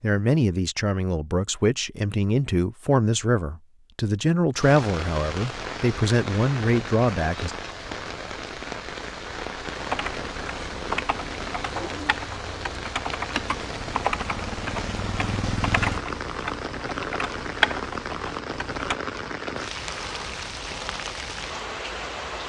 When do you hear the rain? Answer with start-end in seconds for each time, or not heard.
4.5-22.4.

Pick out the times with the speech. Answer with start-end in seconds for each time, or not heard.
0.0-7.5.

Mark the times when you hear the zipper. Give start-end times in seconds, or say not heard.
not heard.